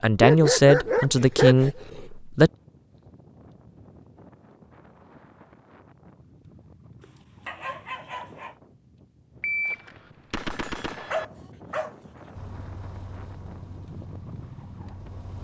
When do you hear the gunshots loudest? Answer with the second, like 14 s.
10 s.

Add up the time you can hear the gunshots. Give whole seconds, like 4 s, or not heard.
2 s.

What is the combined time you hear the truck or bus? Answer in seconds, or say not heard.
3 s.